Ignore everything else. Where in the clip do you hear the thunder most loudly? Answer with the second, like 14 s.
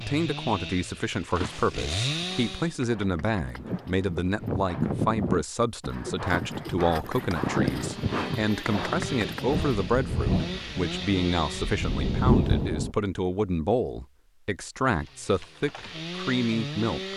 12 s.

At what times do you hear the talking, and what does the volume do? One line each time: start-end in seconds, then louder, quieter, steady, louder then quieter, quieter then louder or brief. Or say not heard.
0.0-17.1 steady.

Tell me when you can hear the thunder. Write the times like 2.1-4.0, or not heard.
9.6-12.9.